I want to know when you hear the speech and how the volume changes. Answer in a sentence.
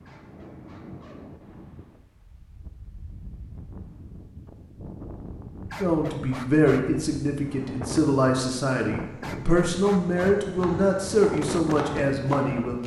The speech can be heard from 5.8 to 12.8 s, at a steady volume.